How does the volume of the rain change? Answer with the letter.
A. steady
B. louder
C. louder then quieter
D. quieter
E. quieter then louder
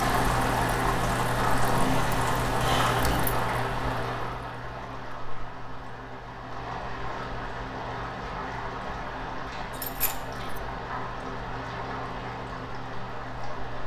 D.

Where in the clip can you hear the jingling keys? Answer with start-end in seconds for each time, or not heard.
1.7-3.4, 9.7-10.4.